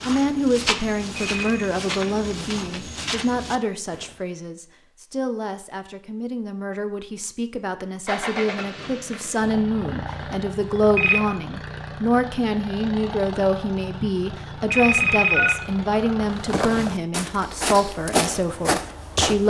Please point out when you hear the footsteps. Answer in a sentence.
You can hear the footsteps from 0.0 to 4.2 s and from 16.4 to 19.4 s.